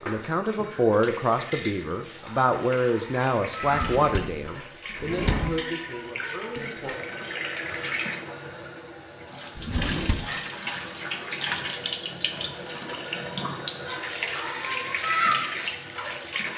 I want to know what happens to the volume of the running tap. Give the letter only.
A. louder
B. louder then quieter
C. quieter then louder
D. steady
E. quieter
A.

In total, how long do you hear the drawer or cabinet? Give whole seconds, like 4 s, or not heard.
3 s.